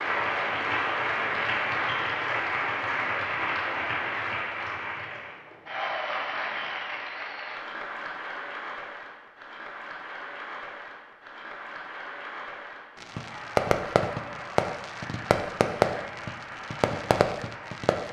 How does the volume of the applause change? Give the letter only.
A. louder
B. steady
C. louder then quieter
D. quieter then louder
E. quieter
E.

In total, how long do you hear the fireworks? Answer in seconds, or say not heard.
5 s.